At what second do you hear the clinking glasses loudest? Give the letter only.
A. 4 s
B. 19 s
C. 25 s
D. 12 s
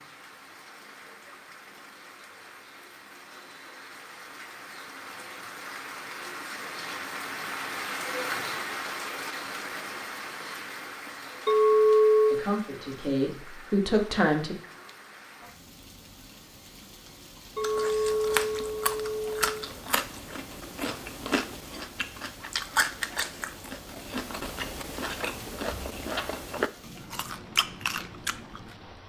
D.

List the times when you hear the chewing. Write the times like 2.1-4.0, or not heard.
17.6-28.9.